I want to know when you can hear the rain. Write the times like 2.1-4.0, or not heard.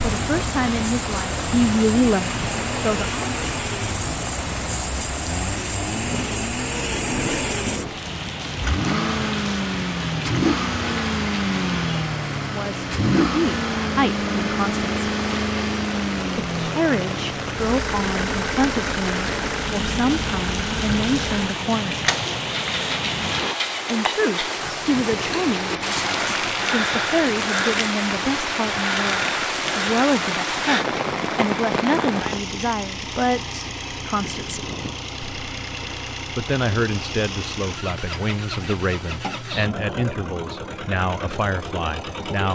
0.0-32.5.